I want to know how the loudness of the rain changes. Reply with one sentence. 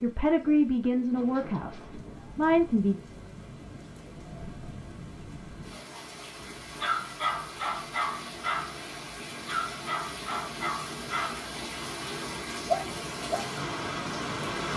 The volume of the rain goes up.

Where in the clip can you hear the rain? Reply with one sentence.
The rain can be heard from 0.0 to 14.7 s.